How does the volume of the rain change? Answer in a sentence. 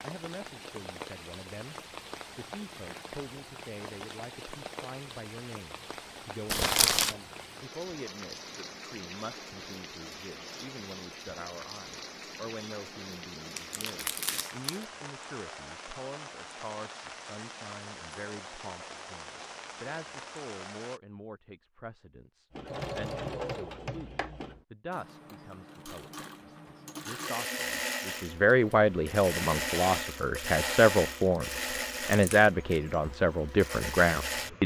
The loudness of the rain stays about the same.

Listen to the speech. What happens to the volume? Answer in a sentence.
The volume of the speech goes up.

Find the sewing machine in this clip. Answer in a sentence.
You can hear the sewing machine from 22.5 to 34.6 s.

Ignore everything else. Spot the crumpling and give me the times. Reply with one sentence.
The crumpling can be heard from 6.5 to 7.2 s, from 13.6 to 14.8 s and from 31.5 to 32.5 s.